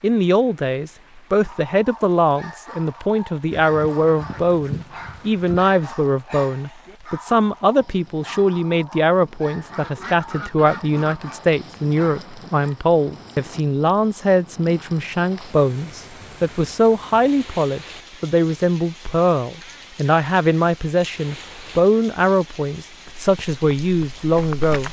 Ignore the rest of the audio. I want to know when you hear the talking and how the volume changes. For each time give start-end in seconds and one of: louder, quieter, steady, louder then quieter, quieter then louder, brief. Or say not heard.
0.0-24.8 steady.